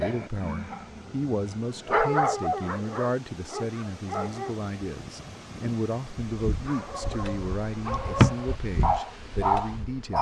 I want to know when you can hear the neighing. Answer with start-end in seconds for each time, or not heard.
not heard.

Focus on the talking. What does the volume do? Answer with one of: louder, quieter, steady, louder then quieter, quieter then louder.
steady.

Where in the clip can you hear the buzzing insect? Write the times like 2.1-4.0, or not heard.
6.3-10.1.